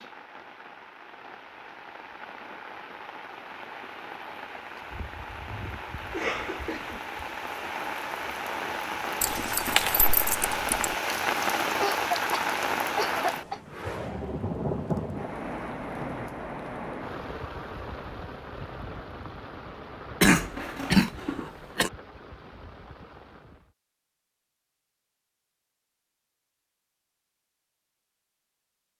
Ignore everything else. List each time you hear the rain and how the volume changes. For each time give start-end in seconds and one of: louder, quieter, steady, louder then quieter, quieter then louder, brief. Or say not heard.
0.0-23.8 louder then quieter.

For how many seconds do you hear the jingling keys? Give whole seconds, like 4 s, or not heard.
2 s.